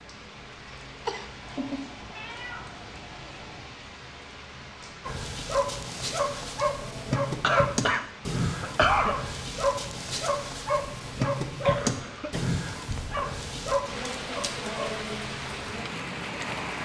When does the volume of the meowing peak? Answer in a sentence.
The loudest moment of the meowing is at 2 seconds.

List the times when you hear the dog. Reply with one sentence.
You can hear the dog from 5.0 to 15.1 s.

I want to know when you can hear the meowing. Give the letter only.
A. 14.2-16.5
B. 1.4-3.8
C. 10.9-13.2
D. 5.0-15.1
B.